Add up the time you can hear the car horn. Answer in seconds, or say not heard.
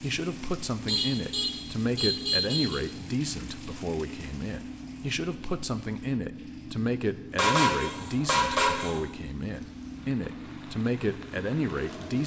4 s.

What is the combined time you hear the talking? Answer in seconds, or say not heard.
12 s.